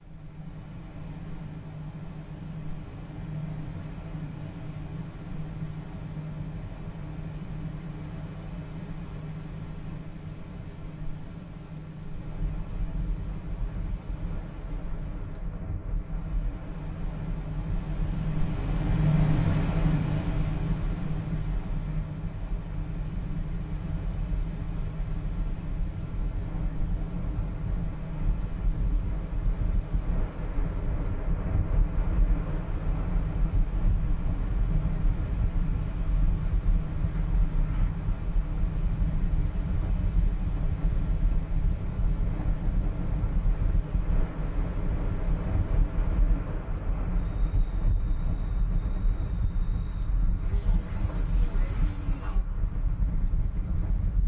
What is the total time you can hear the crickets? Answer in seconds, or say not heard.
54 s.